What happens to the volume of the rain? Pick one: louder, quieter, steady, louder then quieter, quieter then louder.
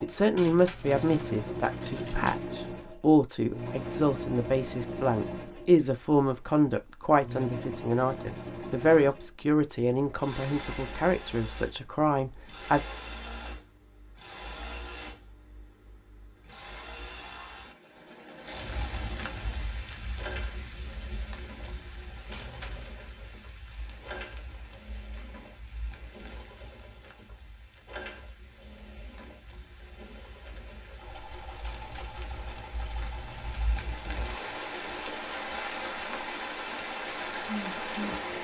quieter then louder.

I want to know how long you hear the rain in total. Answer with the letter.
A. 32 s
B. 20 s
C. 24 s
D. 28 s
B.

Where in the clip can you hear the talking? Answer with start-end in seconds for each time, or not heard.
0.0-12.8.